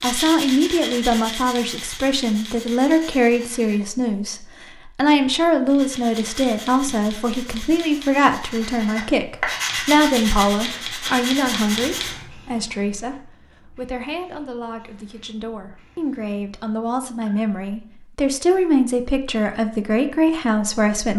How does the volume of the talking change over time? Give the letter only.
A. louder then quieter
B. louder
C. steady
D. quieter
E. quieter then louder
E.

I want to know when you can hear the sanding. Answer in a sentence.
You can hear the sanding from 0.0 to 3.8 s and from 5.7 to 12.2 s.